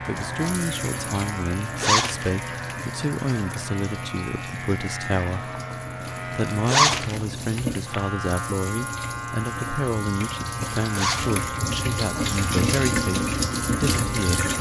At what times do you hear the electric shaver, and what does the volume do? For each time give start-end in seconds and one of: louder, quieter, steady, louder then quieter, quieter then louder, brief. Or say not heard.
0.0-14.5 steady.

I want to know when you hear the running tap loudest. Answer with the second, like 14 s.
13 s.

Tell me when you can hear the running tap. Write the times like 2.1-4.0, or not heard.
0.0-14.5.